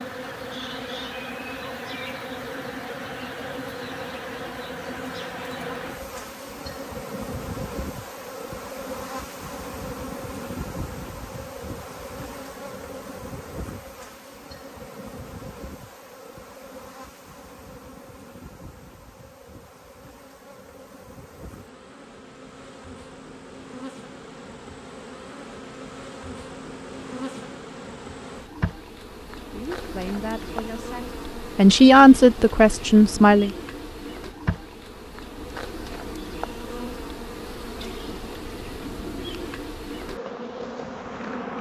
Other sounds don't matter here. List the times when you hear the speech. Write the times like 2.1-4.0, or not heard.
29.5-33.5.